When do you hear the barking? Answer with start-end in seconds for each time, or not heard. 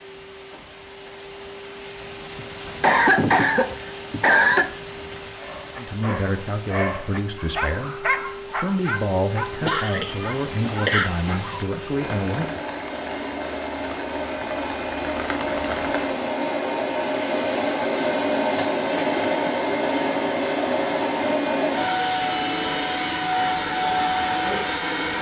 5.3-11.7.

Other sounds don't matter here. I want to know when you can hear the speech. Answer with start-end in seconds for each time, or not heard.
5.8-12.6.